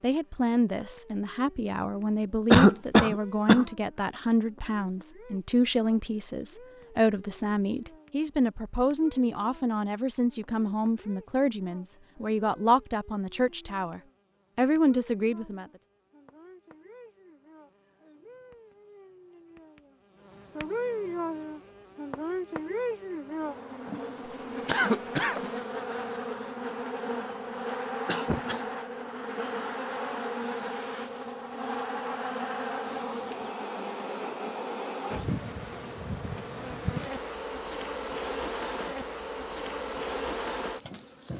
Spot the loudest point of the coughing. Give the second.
3 s.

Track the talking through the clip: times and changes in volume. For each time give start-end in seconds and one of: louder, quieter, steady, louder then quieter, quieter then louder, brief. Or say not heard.
0.0-15.7 steady.